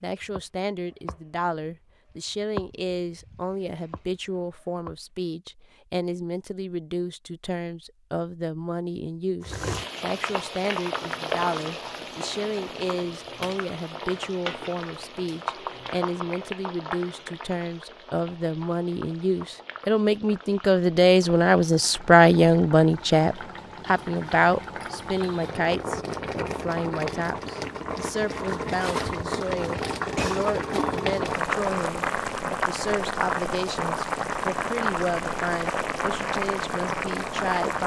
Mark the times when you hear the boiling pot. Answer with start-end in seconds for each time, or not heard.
9.4-37.8.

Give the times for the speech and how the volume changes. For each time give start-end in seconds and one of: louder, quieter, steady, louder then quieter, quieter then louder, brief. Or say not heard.
0.0-37.8 louder then quieter.